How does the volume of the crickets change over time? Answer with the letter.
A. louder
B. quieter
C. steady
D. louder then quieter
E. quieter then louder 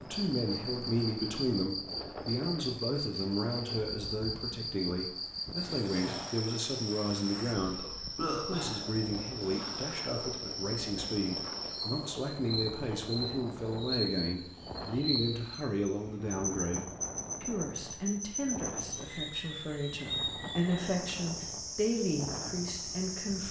C.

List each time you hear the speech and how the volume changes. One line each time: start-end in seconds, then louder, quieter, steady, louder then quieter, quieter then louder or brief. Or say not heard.
0.0-23.4 steady.